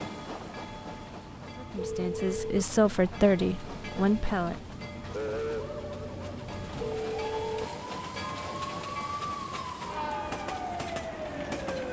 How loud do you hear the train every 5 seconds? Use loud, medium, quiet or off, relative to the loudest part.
medium, loud, loud.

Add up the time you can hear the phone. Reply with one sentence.
The phone can be heard for 2 seconds in total.